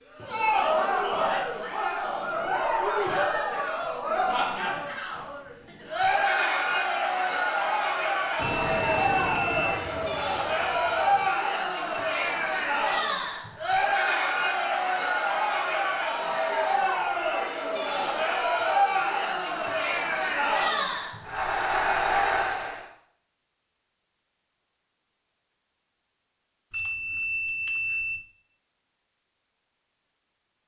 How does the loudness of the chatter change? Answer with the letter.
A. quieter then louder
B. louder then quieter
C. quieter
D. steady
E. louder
D.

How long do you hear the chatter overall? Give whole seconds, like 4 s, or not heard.
23 s.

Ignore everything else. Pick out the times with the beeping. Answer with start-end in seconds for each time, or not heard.
8.4-9.8, 26.7-28.2.